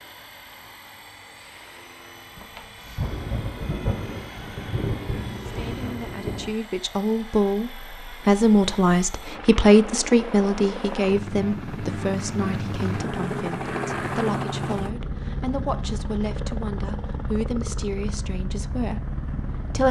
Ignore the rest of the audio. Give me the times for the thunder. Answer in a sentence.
The thunder can be heard from 2.4 to 6.5 s.